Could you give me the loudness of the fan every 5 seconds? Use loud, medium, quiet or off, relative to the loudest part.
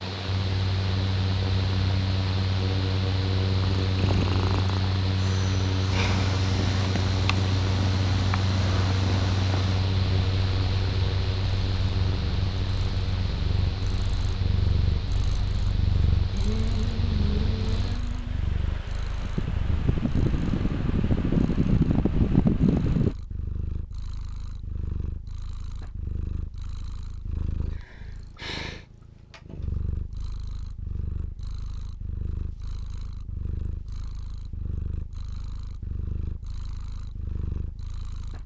medium, medium, medium, quiet, loud, off, off, off.